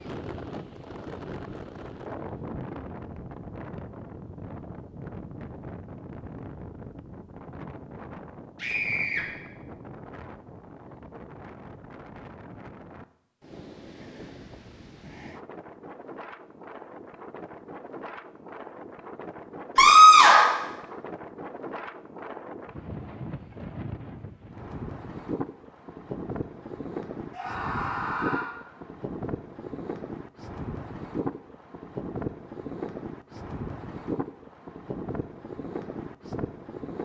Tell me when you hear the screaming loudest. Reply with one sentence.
The volume of the screaming peaks at 20 seconds.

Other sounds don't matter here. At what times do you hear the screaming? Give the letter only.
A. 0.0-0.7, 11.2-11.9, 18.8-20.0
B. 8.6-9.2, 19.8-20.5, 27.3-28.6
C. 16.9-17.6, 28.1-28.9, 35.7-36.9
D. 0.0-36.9
B.